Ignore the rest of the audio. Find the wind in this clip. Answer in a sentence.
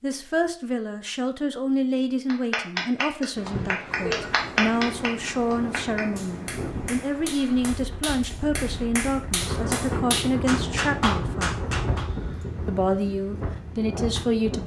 You can hear the wind from 3.4 to 14.6 s.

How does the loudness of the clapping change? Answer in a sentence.
The loudness of the clapping goes down, then up.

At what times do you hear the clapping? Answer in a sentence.
The clapping can be heard from 2.3 to 12.1 s.